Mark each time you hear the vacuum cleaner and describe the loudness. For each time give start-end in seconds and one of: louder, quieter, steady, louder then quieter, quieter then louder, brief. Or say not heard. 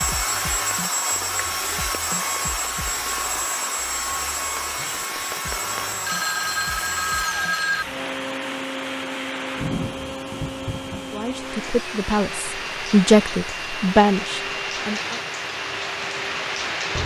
0.0-16.8 quieter.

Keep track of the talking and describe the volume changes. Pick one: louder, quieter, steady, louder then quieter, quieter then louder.
louder then quieter.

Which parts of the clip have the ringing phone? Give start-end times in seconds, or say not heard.
5.5-8.2.